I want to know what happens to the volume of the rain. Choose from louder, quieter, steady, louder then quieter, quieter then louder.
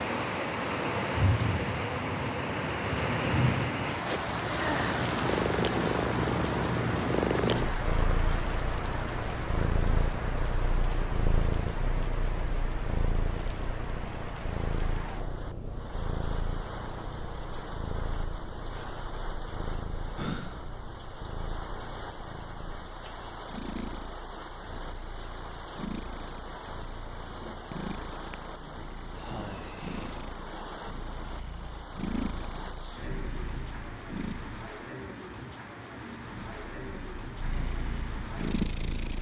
quieter.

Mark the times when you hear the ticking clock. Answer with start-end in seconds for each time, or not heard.
not heard.